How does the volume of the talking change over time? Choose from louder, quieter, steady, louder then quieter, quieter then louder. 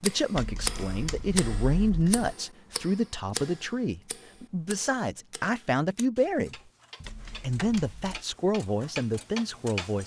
steady.